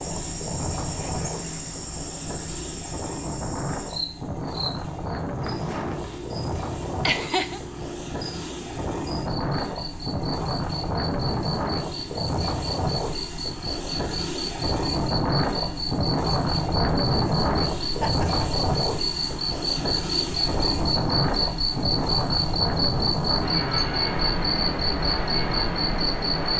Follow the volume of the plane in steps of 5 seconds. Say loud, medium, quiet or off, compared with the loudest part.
medium, medium, loud, loud, loud, loud.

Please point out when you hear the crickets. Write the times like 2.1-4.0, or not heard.
0.0-26.5.